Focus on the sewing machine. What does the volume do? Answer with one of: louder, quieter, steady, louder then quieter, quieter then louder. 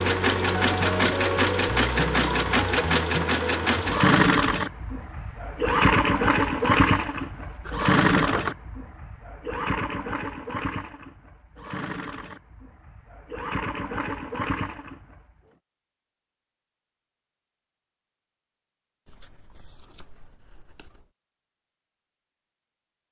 quieter.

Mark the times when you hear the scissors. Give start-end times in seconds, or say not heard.
7.6-8.6, 19.1-21.1.